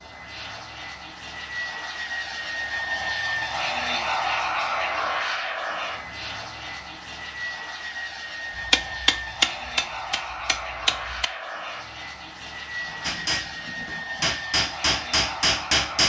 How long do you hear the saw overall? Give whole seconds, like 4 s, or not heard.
not heard.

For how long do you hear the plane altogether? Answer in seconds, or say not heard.
16 s.